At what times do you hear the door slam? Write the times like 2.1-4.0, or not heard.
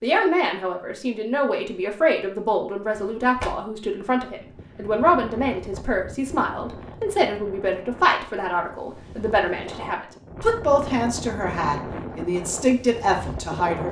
2.9-3.5.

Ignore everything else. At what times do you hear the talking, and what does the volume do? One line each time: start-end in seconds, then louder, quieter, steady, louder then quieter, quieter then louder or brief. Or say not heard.
0.0-13.8 steady.